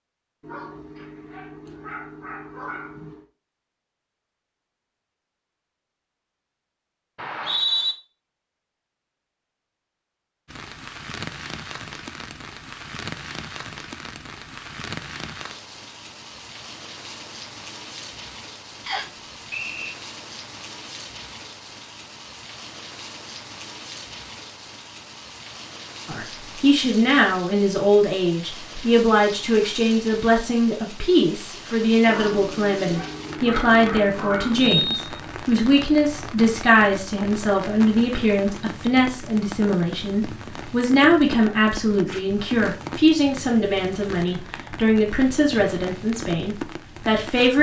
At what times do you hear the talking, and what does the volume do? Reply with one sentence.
The talking can be heard from 26.1 to 47.5 s, at a steady volume.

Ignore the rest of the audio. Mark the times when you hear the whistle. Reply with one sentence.
The whistle can be heard from 7.2 to 8.0 s, from 18.9 to 19.9 s and from 34.7 to 35.3 s.